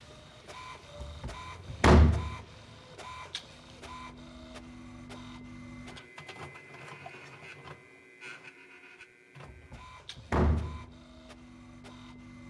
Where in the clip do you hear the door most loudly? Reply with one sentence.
The volume of the door peaks at 2 seconds.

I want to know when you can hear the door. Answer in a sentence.
You can hear the door from 1.0 to 2.3 s and from 9.4 to 10.8 s.